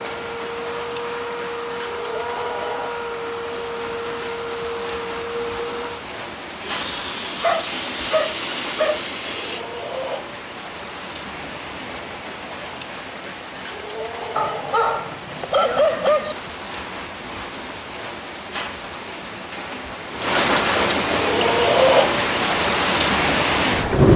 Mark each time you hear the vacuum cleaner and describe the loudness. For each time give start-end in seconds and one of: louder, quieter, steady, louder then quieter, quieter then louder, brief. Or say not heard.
0.0-9.7 steady.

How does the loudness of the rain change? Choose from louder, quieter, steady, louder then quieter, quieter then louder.
louder.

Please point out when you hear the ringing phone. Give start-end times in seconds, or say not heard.
not heard.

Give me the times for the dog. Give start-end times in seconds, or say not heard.
7.4-9.0, 14.3-16.4.